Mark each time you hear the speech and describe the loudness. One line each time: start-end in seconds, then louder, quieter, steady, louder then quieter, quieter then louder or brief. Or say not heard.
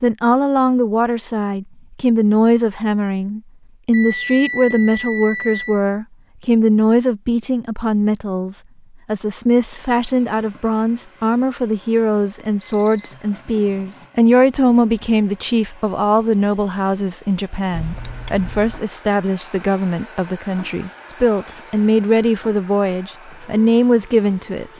0.0-24.7 steady.